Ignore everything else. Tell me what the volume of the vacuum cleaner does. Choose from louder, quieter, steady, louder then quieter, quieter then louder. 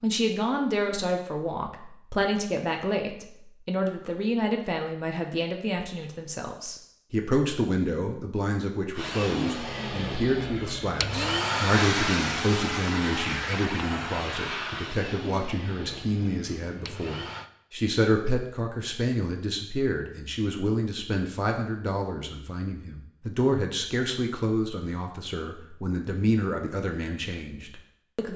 louder then quieter.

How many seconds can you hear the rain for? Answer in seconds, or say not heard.
not heard.